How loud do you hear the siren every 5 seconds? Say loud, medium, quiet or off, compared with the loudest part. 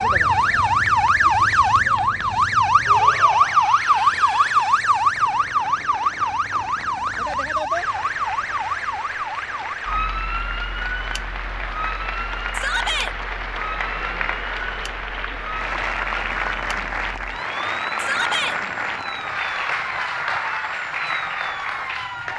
loud, medium, quiet, quiet, quiet.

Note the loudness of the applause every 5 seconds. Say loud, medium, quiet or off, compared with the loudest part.
quiet, medium, loud, loud, loud.